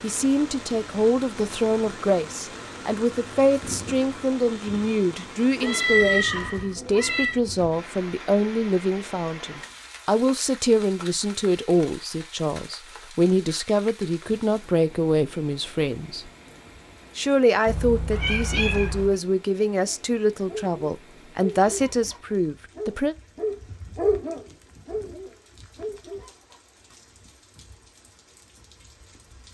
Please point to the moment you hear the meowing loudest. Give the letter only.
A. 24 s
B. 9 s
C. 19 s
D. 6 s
D.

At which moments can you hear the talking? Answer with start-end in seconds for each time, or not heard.
0.0-16.2, 17.1-23.1.